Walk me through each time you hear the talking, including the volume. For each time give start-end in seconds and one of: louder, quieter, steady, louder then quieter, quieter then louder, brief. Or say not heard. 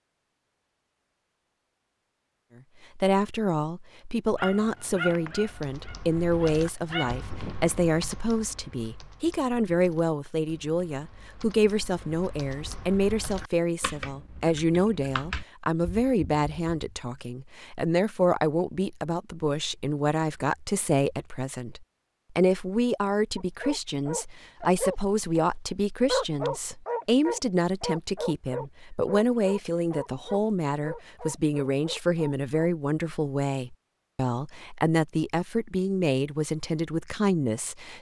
3.0-37.9 steady.